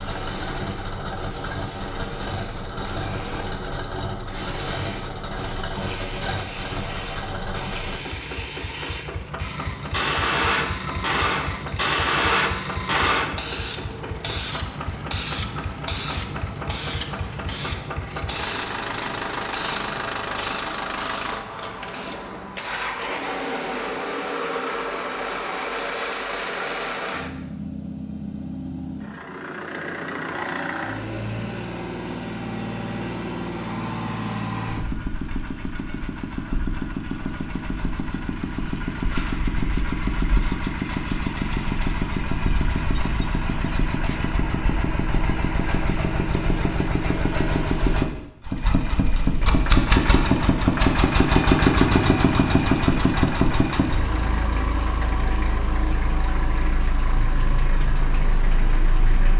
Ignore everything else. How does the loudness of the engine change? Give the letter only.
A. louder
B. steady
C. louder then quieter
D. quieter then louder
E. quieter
A.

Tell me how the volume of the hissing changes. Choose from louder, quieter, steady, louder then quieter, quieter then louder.
louder then quieter.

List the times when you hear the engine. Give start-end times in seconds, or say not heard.
0.0-59.3.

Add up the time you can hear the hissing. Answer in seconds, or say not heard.
27 s.